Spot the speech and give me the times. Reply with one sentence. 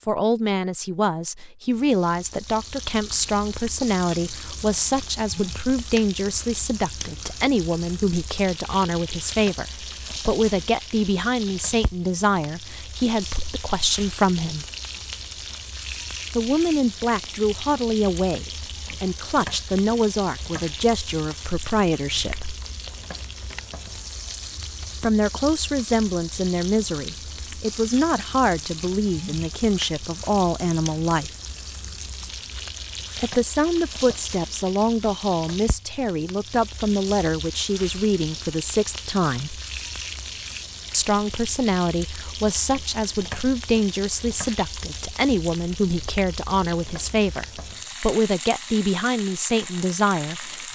The speech can be heard from 0.1 to 14.7 s, from 16.4 to 22.6 s, from 25.0 to 31.3 s, from 33.1 to 39.6 s and from 40.9 to 50.7 s.